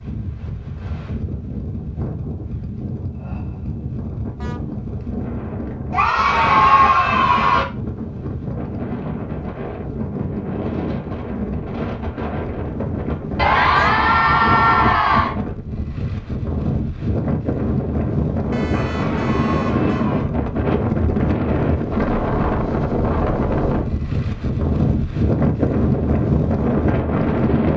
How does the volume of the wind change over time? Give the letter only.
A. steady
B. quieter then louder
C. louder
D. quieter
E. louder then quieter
C.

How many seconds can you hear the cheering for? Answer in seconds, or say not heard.
5 s.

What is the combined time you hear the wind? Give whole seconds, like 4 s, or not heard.
28 s.